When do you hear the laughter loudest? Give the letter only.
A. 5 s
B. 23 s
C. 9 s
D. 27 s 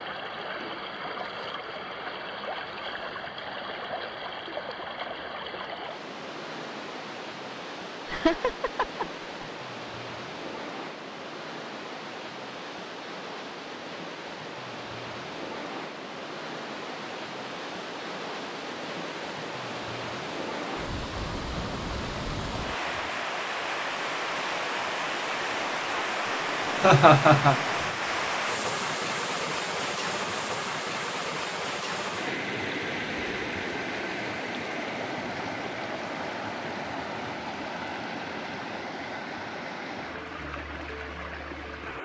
D.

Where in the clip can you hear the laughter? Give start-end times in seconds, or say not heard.
8.1-9.4, 26.8-27.6.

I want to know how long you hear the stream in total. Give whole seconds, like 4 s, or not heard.
42 s.